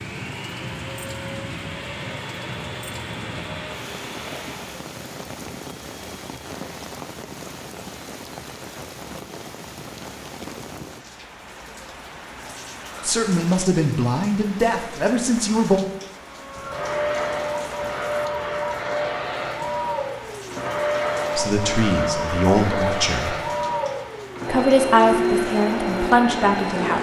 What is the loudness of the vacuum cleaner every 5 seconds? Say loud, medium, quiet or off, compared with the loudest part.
quiet, off, off, loud, loud, loud.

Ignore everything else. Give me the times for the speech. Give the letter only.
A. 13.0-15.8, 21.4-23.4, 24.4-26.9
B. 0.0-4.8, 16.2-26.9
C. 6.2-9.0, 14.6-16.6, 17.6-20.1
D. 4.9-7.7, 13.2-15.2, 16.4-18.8
A.